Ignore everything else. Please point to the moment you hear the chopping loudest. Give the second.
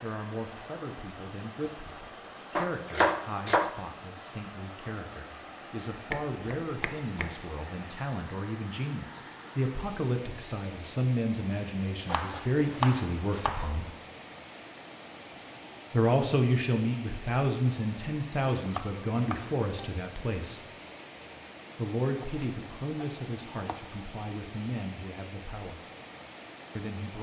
3 s.